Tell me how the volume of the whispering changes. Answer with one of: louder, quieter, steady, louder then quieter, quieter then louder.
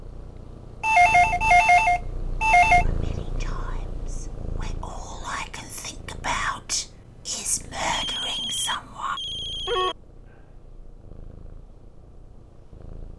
louder.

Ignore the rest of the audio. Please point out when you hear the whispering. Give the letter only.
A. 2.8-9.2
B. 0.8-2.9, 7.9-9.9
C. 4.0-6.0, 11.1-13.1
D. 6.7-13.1
A.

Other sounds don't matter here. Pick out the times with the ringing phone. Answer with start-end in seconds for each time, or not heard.
0.8-2.9, 7.9-9.9.